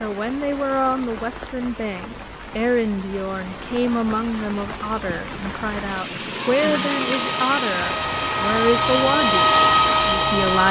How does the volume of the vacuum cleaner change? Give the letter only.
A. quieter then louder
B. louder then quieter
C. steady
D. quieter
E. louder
E.